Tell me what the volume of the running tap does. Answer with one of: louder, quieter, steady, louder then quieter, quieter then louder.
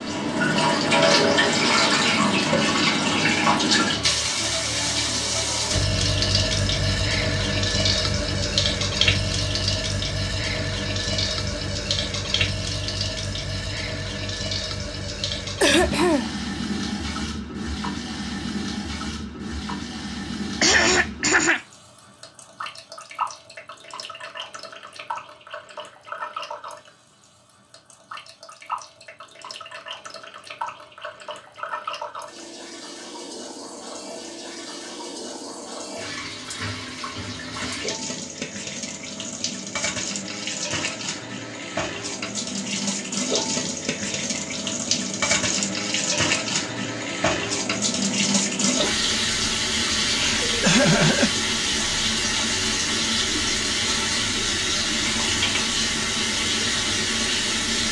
quieter then louder.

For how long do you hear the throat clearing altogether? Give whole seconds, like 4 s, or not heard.
3 s.